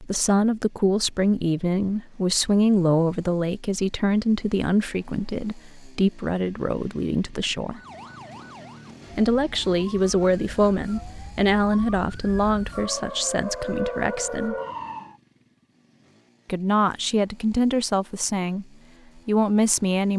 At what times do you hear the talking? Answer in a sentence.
The talking can be heard from 0.0 to 7.8 s, from 9.2 to 14.6 s, from 16.4 to 18.6 s and from 19.2 to 20.1 s.